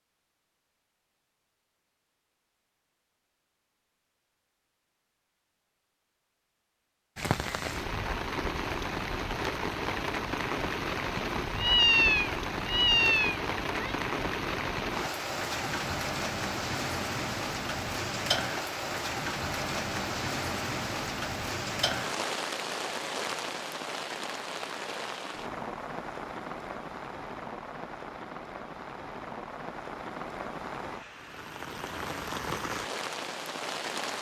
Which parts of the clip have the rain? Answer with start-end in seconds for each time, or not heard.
7.2-34.1.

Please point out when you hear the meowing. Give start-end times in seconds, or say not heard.
11.2-13.9.